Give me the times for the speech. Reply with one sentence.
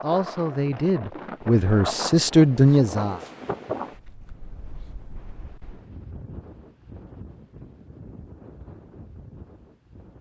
You can hear the speech from 0.0 to 3.1 s.